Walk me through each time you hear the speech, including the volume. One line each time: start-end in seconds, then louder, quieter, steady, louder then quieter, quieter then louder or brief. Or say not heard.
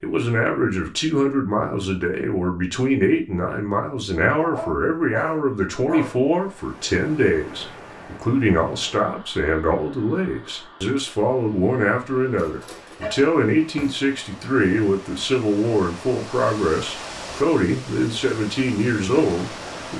0.0-19.9 steady.